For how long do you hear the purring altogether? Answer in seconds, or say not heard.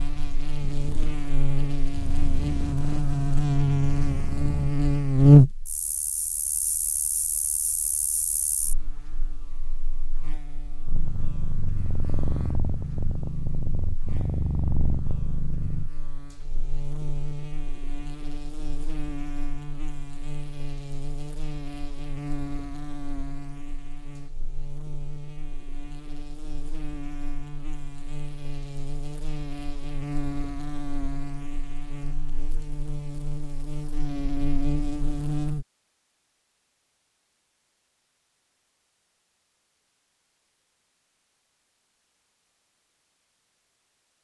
10 s.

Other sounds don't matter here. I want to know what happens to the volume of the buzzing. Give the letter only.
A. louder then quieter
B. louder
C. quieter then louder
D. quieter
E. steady
C.